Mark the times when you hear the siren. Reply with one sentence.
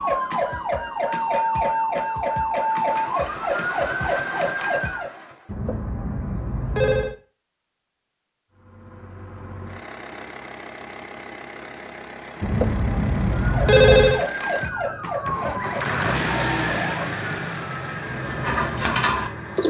You can hear the siren from 0.0 to 5.1 s and from 13.4 to 17.1 s.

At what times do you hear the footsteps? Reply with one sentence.
The footsteps can't be heard in this clip.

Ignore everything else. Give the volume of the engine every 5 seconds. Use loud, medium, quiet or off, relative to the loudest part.
medium, quiet, medium, loud.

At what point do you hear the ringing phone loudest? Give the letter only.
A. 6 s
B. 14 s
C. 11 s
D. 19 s
B.